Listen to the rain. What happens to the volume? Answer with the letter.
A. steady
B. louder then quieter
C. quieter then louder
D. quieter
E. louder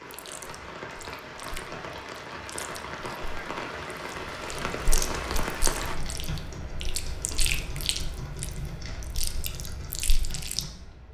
E.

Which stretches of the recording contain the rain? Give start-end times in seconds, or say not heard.
0.0-6.0.